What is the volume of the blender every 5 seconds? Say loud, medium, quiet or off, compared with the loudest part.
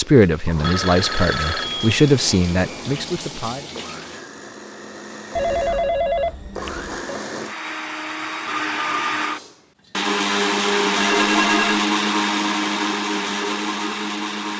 quiet, medium, loud.